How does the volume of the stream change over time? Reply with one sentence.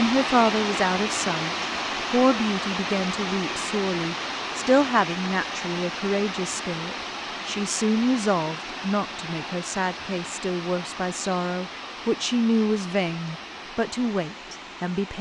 The loudness of the stream goes down.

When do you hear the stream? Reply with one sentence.
You can hear the stream from 0.0 to 15.1 s.